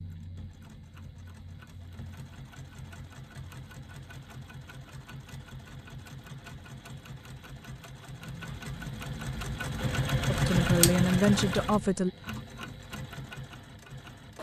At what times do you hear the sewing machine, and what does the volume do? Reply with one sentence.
The sewing machine can be heard from 0.0 to 14.3 s, getting louder then quieter.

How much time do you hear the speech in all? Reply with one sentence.
The speech can be heard for 2 seconds in total.